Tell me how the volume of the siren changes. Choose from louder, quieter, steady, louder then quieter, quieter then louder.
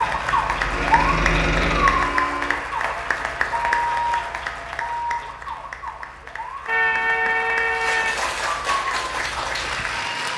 quieter then louder.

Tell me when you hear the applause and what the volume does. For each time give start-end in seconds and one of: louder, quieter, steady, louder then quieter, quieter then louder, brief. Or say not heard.
0.0-10.3 quieter then louder.